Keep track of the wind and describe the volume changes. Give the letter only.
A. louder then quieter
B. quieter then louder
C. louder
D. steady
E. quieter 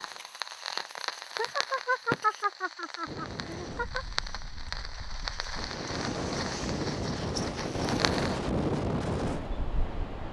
C.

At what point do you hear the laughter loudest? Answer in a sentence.
The volume of the laughter peaks at 2 seconds.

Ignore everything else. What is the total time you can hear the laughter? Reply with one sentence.
The laughter can be heard for 3 seconds in total.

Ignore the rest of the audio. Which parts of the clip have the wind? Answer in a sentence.
You can hear the wind from 3.0 to 10.2 s.